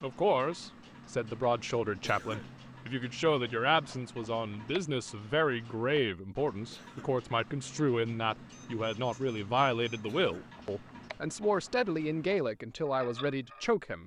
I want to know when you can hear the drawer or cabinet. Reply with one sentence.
You can't hear the drawer or cabinet here.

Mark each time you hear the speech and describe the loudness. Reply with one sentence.
The speech can be heard from 0.0 to 14.0 s, at a steady volume.